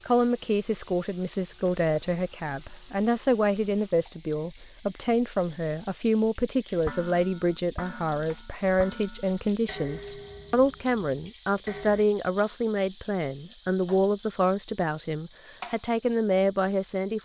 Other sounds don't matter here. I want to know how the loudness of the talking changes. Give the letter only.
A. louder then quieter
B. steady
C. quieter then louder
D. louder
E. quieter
B.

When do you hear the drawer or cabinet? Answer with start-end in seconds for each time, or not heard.
not heard.